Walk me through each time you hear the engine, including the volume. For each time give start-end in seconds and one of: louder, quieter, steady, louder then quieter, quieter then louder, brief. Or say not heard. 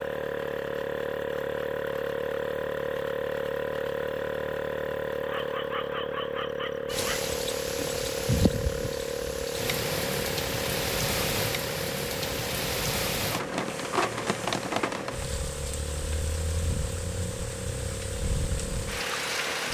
0.0-19.6 quieter.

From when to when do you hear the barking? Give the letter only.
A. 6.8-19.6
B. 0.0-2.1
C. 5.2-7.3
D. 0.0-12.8
C.